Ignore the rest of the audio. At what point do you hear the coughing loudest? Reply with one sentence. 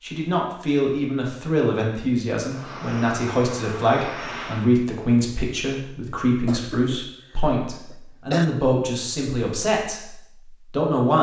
The loudest moment of the coughing is at 8 seconds.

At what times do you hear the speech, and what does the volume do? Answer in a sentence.
The speech can be heard from 0.0 to 11.1 s, at a steady volume.